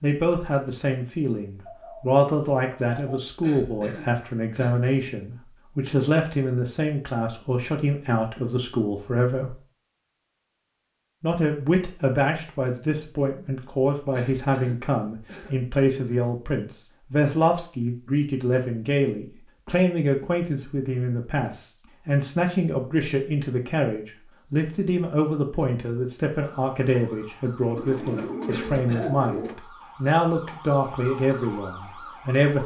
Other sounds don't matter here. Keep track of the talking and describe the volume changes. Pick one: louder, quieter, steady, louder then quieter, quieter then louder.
steady.